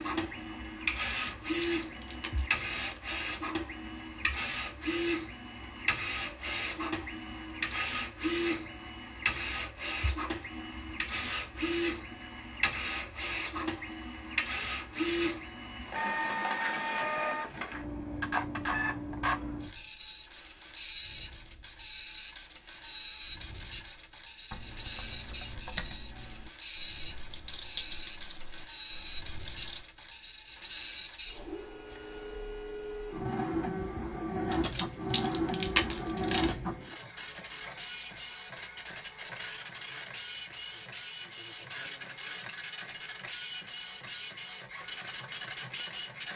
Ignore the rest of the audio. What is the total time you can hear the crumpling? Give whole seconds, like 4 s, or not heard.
4 s.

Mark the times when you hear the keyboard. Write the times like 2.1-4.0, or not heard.
24.5-29.9.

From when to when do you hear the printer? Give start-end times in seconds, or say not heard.
0.0-46.3.